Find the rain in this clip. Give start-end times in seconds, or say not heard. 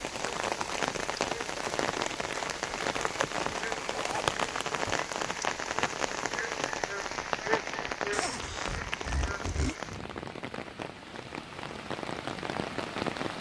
0.0-13.3.